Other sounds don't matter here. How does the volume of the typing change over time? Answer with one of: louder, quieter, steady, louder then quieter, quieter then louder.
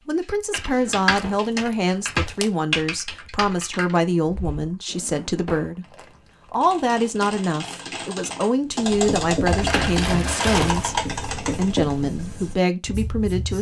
quieter then louder.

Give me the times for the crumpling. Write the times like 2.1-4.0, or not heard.
1.0-2.5, 5.9-7.3, 9.5-10.9.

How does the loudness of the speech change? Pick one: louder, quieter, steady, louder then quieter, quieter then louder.
steady.